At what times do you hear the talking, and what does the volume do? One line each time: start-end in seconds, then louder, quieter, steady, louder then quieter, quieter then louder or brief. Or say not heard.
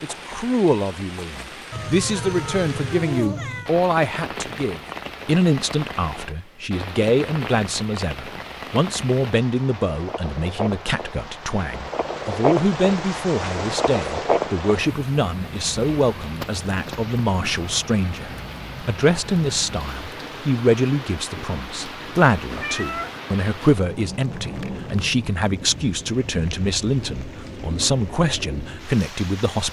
0.0-29.6 steady.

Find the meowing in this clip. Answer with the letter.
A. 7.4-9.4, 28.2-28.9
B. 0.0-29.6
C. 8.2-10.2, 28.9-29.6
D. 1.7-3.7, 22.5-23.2
D.